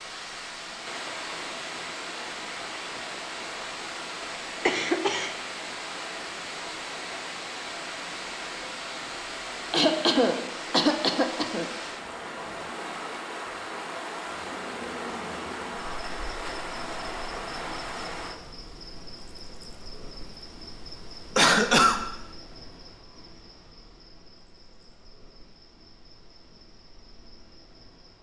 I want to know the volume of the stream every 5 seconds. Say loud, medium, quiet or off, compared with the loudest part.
loud, loud, loud, loud, off, off.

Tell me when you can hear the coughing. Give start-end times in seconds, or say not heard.
4.7-5.3, 9.7-11.7, 21.4-22.0.